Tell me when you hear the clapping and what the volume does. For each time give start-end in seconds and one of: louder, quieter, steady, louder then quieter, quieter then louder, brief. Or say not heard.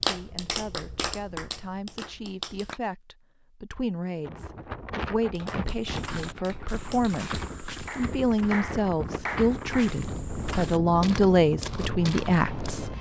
0.0-2.8 brief
5.2-9.9 louder.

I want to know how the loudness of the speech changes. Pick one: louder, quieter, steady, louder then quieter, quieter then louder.
louder.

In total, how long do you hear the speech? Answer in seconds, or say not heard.
13 s.